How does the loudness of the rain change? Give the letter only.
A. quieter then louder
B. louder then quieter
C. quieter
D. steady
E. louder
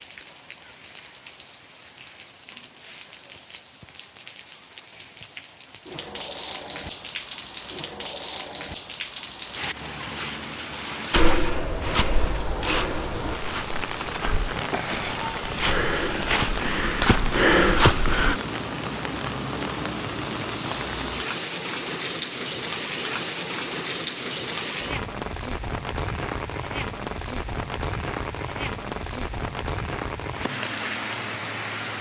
E.